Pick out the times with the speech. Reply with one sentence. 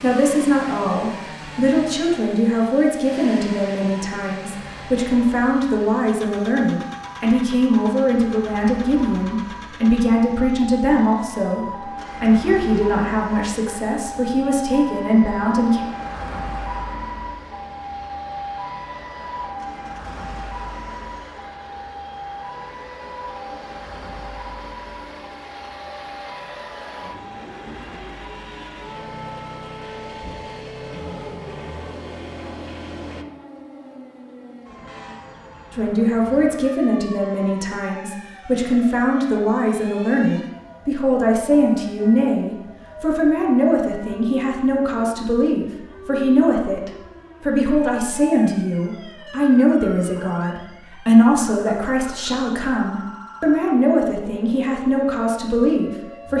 You can hear the speech from 0.0 to 15.8 s and from 35.7 to 56.3 s.